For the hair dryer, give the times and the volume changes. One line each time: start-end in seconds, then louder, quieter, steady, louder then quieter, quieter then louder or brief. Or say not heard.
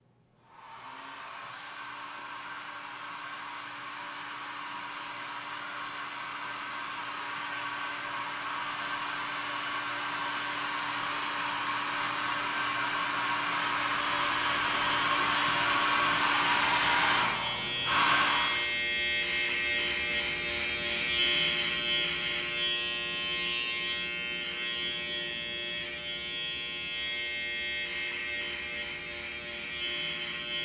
0.0-18.7 louder.